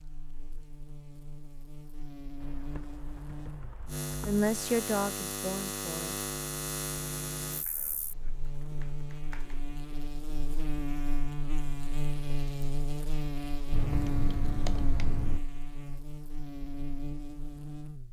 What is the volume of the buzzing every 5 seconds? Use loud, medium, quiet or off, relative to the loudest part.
medium, loud, loud, medium.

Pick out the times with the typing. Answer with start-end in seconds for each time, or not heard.
2.4-4.4, 7.6-9.6, 13.7-15.4.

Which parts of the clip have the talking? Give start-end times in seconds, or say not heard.
4.2-6.2.